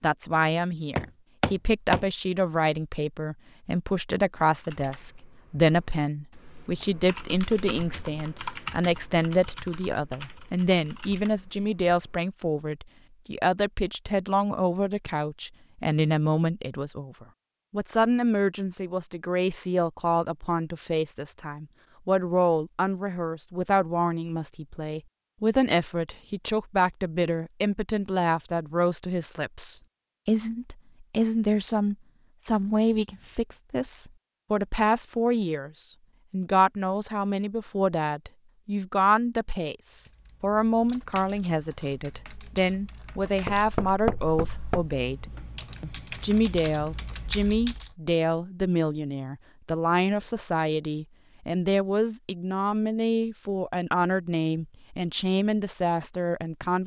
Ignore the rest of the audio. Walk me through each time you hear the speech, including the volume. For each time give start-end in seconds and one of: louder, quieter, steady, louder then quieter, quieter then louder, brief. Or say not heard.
0.0-56.8 steady.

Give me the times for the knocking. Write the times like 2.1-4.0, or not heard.
0.9-2.0, 43.5-44.9.